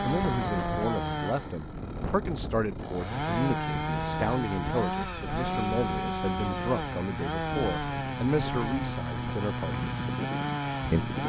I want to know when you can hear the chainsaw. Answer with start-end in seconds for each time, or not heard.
0.0-11.2.